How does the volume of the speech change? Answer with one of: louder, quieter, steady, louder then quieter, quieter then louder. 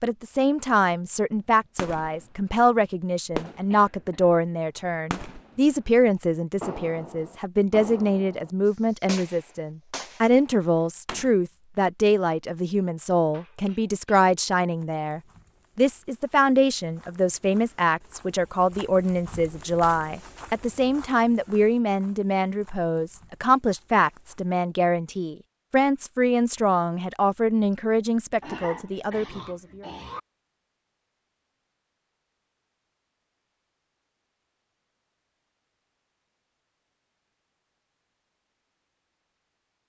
steady.